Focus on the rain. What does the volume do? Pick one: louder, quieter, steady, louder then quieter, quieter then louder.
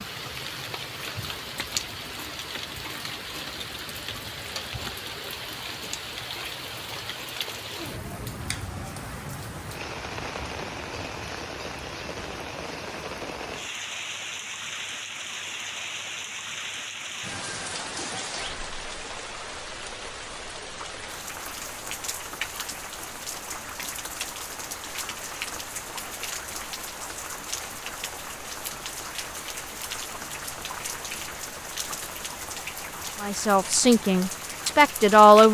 steady.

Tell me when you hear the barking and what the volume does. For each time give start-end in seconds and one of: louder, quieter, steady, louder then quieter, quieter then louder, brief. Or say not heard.
not heard.